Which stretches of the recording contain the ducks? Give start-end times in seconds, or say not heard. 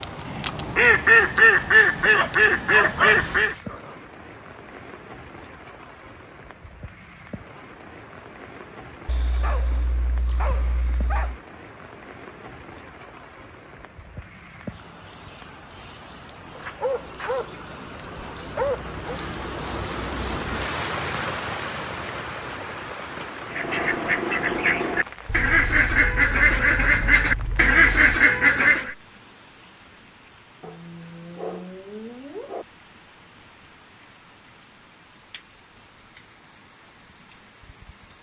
0.0-3.5, 23.4-28.9.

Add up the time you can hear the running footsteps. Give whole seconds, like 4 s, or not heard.
not heard.